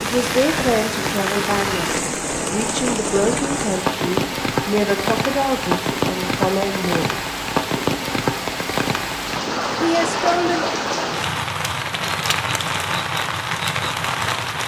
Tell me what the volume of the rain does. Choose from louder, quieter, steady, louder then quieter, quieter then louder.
steady.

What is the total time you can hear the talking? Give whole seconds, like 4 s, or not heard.
8 s.